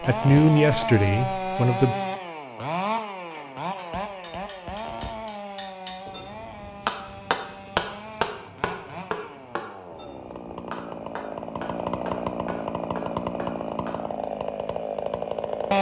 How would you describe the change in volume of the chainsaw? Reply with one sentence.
The loudness of the chainsaw goes down, then up.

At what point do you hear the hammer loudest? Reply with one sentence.
The volume of the hammer peaks at 8 seconds.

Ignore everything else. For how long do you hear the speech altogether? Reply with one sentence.
The speech can be heard for 2 seconds in total.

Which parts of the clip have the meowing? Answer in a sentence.
The meowing can't be heard in this clip.